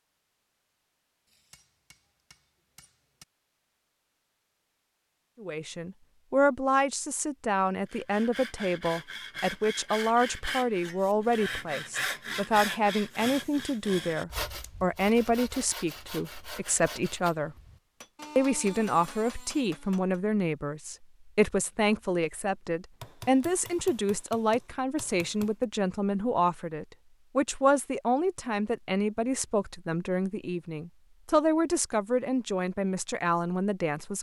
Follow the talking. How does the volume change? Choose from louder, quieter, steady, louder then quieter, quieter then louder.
steady.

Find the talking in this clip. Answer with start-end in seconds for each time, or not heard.
5.4-17.6, 18.4-34.1.